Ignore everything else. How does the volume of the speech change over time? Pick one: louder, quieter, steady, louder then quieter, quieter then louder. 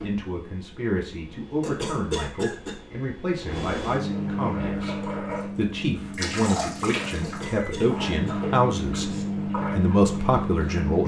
louder.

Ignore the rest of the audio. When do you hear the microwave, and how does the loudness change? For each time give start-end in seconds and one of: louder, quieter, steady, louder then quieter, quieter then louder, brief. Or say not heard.
0.0-11.0 louder.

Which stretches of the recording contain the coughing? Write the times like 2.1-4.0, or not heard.
1.6-2.8, 7.2-9.2.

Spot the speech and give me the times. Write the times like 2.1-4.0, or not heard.
0.0-11.0.